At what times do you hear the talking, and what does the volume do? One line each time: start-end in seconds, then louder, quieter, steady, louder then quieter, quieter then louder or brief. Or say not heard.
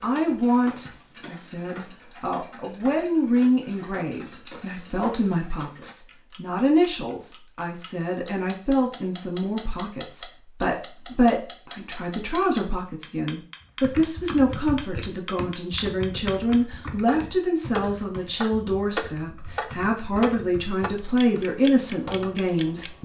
0.0-23.0 steady.